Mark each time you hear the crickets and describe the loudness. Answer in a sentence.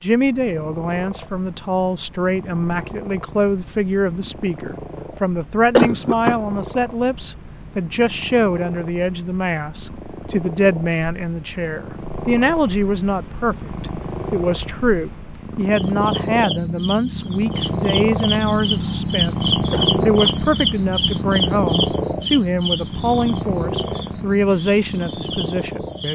You can hear the crickets from 0.0 to 26.1 s, getting louder.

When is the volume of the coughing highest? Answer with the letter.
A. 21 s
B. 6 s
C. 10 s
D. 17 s
B.